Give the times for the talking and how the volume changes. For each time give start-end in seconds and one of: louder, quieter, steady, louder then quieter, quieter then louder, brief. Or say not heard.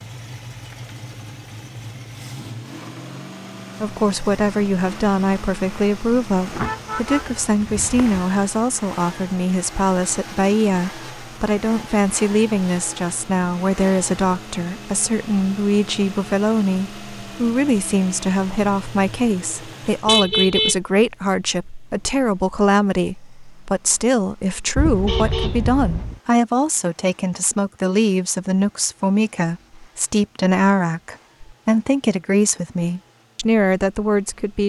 3.8-34.6 steady.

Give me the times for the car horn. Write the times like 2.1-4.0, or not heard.
6.5-8.2, 20.1-20.8, 24.8-26.2.